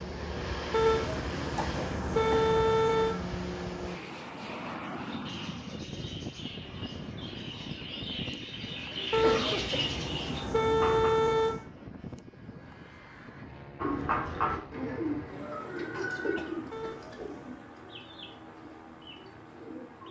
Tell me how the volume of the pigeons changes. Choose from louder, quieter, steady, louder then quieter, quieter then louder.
louder then quieter.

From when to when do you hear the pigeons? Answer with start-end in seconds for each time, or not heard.
5.0-11.1, 13.8-20.0.